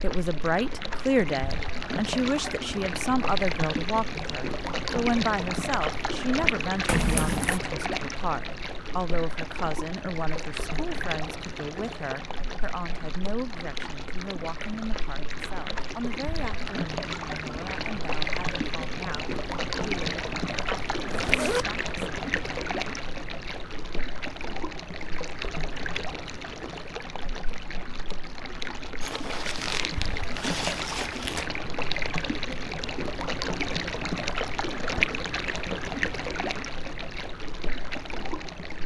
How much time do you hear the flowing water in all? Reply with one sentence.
You can hear the flowing water for 39 seconds altogether.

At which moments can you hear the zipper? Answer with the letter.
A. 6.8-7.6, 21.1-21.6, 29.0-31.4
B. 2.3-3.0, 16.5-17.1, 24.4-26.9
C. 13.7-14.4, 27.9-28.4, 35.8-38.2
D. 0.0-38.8
A.